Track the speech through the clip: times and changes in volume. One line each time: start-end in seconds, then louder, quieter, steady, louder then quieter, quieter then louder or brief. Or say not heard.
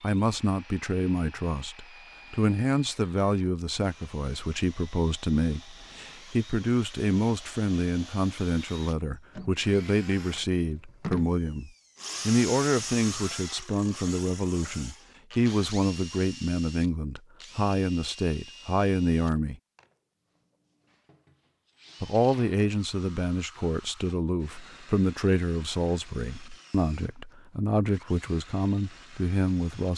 0.0-19.6 steady
22.0-29.9 steady.